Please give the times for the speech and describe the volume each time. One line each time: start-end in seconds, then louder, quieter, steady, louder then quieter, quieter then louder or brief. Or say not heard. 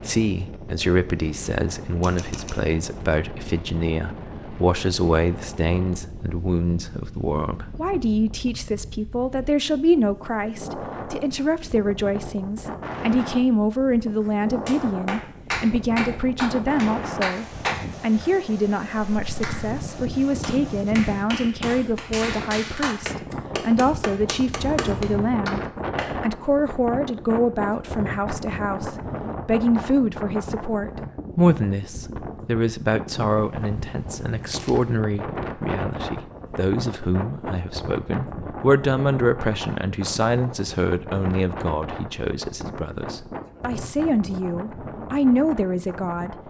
0.0-46.4 steady.